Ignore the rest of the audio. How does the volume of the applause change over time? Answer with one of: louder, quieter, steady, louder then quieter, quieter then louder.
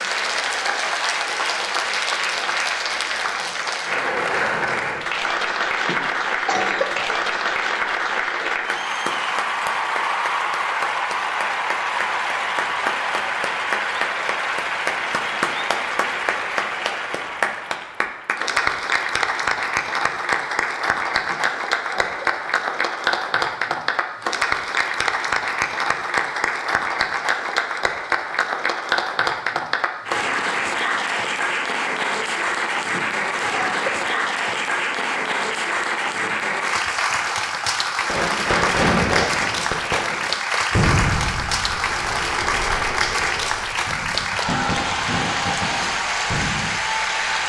steady.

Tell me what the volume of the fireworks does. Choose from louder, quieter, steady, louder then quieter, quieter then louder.
quieter.